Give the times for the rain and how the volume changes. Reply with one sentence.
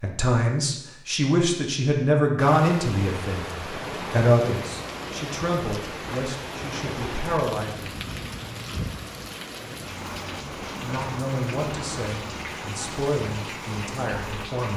You can hear the rain from 2.4 to 14.7 s, at a steady volume.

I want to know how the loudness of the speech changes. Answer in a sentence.
The volume of the speech goes down.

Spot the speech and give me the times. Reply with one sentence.
The speech can be heard from 0.0 to 8.0 s and from 10.8 to 14.7 s.